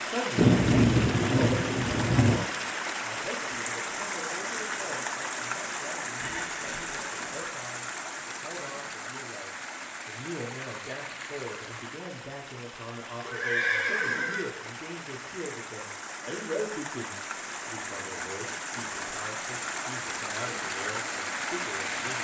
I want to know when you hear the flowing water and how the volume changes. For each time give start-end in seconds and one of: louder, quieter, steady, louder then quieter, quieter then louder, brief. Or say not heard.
0.0-22.2 quieter then louder.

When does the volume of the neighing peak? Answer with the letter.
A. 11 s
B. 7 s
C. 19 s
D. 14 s
D.